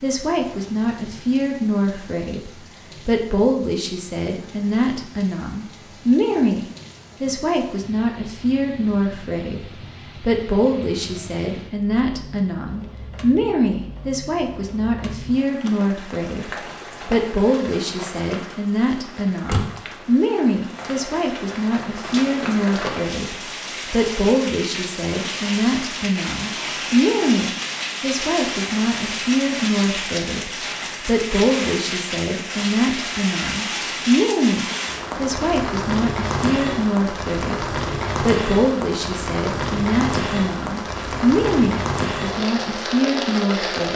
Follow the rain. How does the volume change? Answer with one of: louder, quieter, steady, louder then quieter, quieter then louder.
louder.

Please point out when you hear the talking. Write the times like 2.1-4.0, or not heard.
0.0-43.9.